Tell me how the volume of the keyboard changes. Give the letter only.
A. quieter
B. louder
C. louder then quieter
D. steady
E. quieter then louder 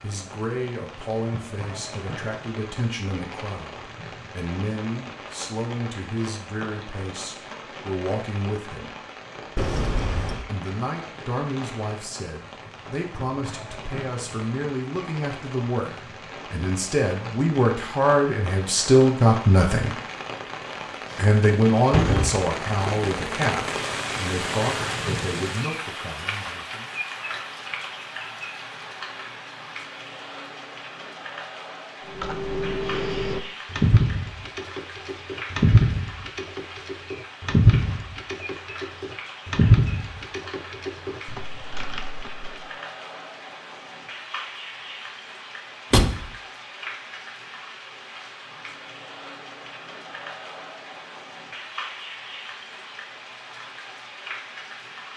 A.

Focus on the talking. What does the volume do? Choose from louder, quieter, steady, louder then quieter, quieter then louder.
louder then quieter.